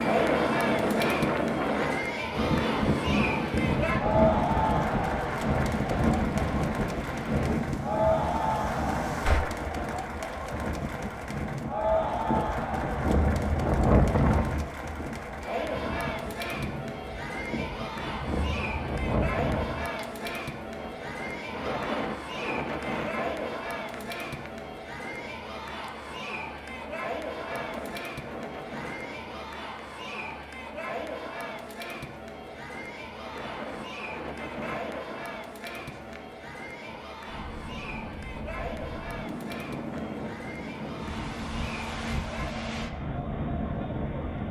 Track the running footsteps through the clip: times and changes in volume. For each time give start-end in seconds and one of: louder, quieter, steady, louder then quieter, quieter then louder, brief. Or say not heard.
not heard.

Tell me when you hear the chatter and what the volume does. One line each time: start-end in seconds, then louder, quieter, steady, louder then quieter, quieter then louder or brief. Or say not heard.
0.0-44.4 quieter.